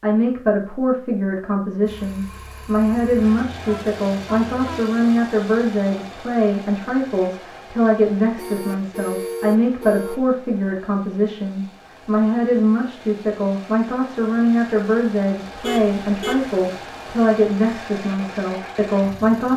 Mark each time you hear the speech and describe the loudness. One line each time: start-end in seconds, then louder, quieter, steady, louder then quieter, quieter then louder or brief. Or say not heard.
0.0-19.5 steady.